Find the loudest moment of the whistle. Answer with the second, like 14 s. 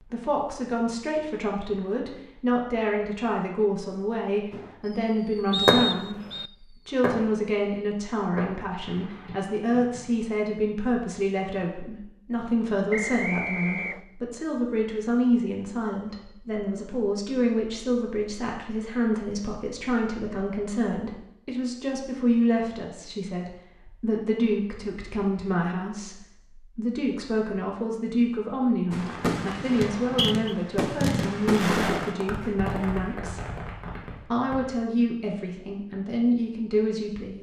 6 s.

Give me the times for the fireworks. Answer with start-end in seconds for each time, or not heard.
4.5-10.3, 28.9-34.7.